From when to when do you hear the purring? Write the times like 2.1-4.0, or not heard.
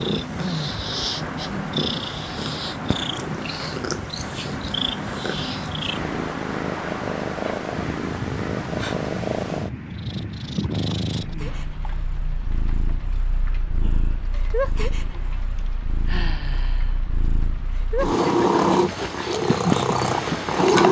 0.0-20.8.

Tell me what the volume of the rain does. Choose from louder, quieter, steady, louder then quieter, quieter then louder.
quieter.